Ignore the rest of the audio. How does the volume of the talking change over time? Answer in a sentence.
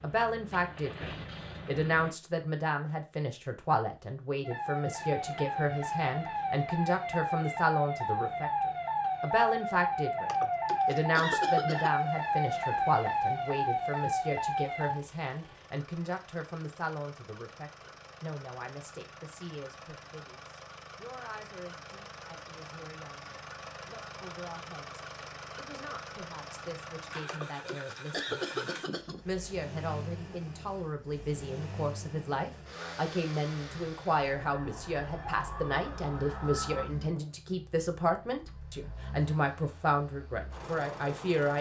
The loudness of the talking goes down, then up.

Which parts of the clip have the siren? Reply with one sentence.
You can hear the siren from 4.4 to 14.9 s and from 34.1 to 36.9 s.